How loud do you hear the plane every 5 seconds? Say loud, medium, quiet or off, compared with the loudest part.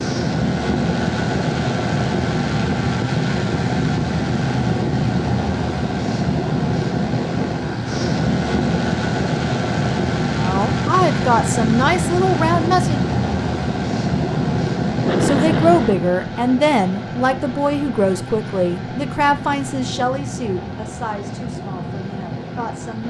loud, loud, loud, medium, medium.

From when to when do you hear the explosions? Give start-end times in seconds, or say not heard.
15.1-16.1.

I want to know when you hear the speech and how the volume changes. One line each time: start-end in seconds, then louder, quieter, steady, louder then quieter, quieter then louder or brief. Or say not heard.
10.4-13.1 brief
15.2-23.0 quieter.